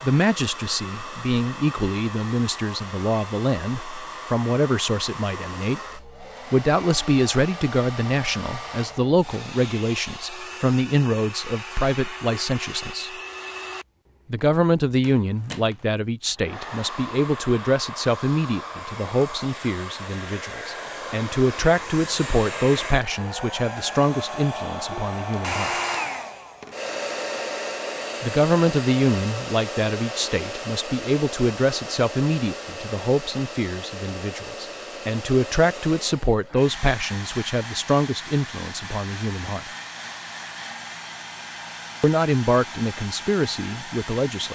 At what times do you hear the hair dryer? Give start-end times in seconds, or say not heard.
0.0-44.5.